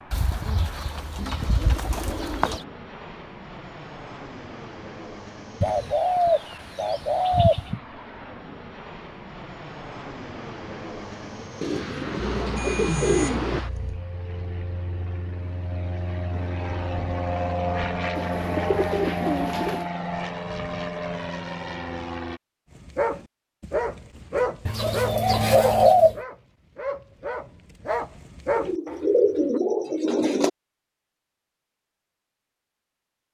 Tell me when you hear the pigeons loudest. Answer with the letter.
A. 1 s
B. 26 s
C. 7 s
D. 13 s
B.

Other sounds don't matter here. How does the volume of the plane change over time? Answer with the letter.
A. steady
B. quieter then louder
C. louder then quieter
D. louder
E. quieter
D.